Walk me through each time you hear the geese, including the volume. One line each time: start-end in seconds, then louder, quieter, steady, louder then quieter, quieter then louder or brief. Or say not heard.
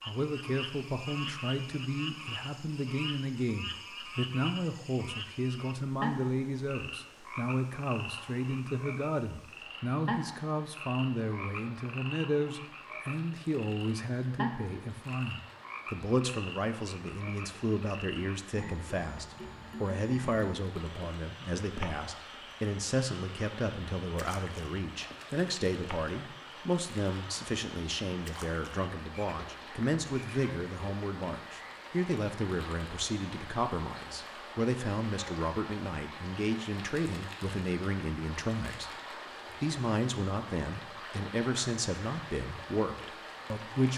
not heard.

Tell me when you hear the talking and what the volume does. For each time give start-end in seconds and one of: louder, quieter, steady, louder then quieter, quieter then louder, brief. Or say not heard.
0.0-43.9 steady.